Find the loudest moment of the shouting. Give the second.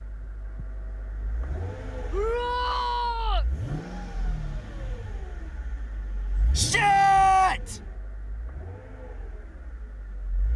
7 s.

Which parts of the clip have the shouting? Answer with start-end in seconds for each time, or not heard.
2.1-3.5, 6.5-7.8.